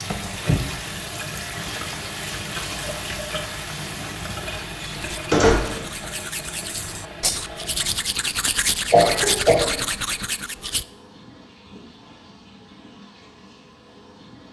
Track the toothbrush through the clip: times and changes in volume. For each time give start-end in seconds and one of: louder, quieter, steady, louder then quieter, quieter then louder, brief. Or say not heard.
4.9-10.8 louder.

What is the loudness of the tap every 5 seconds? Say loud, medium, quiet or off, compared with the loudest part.
loud, medium, quiet.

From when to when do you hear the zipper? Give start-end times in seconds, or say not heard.
not heard.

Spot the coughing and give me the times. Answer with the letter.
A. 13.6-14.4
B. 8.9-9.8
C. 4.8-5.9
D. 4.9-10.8
B.